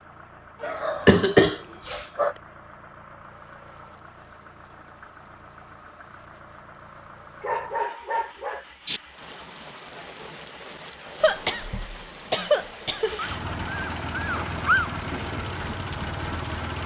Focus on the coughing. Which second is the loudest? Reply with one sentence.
The loudest moment of the coughing is at 1 second.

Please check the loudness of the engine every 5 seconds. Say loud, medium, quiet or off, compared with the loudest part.
quiet, quiet, loud, loud.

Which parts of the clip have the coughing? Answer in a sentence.
The coughing can be heard from 0.6 to 2.0 s and from 11.2 to 13.2 s.